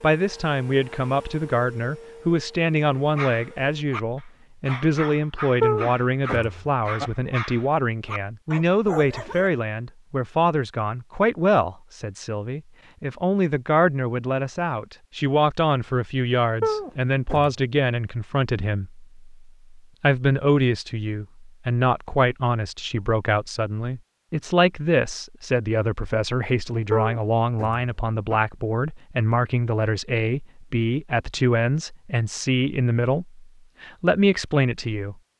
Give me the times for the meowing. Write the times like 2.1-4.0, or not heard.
5.6-7.1, 16.6-17.6, 26.9-28.4.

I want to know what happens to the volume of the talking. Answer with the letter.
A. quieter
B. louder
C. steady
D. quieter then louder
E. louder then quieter
C.